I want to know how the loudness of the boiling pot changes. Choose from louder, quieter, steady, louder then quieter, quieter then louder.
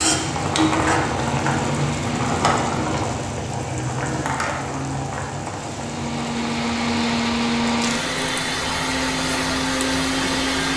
quieter.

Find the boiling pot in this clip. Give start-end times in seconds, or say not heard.
0.0-10.7.